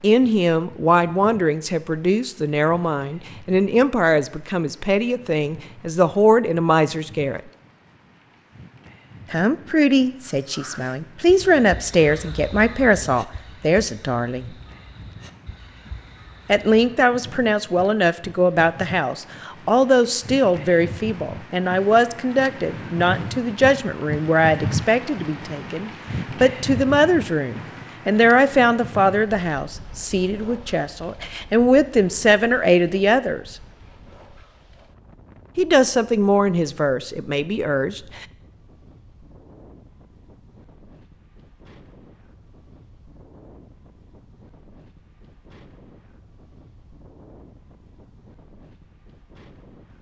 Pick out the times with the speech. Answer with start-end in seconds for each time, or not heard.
0.0-7.4, 9.3-14.6, 16.4-33.5, 35.5-38.2.